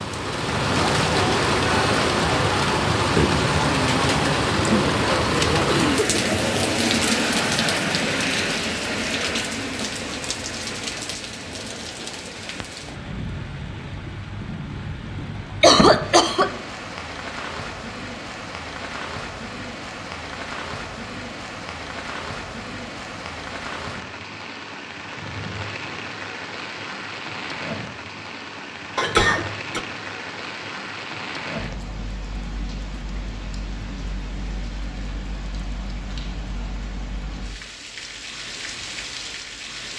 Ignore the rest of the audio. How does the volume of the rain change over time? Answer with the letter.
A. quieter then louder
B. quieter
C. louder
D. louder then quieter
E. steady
B.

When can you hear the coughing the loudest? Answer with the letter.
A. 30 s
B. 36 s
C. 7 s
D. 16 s
D.